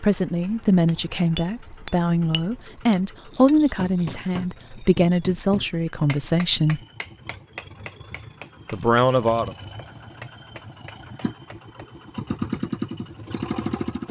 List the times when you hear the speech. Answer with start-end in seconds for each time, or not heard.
0.0-6.8, 8.7-9.5.